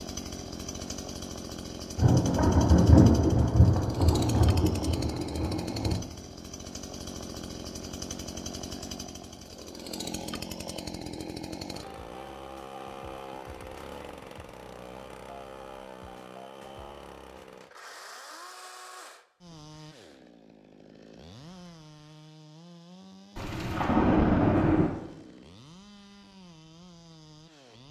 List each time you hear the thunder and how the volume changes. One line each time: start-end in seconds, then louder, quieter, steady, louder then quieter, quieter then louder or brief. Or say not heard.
1.9-6.0 quieter
23.4-24.9 brief.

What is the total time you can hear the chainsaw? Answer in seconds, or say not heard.
28 s.